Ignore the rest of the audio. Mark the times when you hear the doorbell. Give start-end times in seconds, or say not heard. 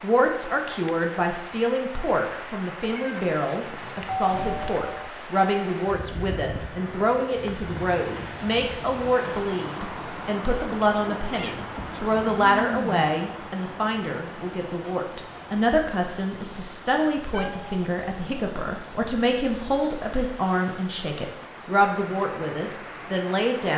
4.0-5.1.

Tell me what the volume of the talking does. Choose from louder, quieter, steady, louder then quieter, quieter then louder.
steady.